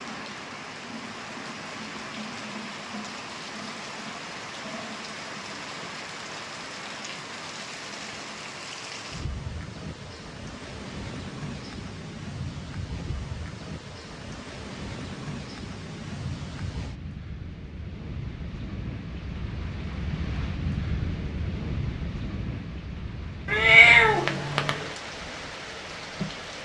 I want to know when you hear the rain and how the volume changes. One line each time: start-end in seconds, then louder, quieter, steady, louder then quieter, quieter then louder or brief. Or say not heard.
0.0-26.6 steady.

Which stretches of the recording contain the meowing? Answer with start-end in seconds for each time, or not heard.
23.4-24.9.